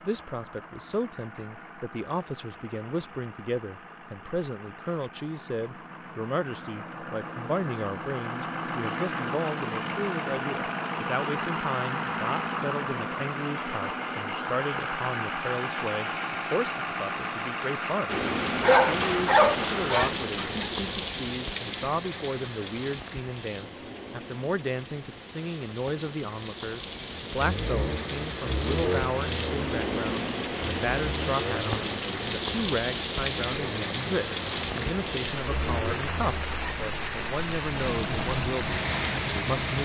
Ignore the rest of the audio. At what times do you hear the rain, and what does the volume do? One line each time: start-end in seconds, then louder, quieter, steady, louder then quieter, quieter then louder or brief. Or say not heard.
18.1-39.7 quieter then louder.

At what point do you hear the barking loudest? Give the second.
19 s.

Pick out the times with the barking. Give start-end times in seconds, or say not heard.
18.6-20.6.